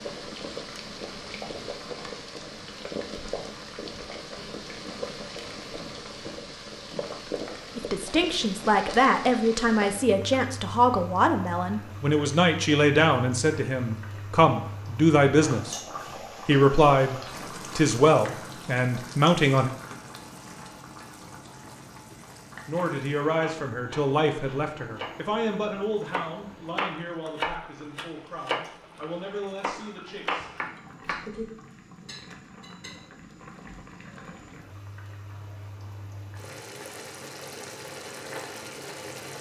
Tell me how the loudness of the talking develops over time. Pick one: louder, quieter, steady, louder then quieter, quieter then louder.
quieter.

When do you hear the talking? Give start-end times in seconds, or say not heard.
7.8-15.8, 16.4-19.7, 22.6-31.4.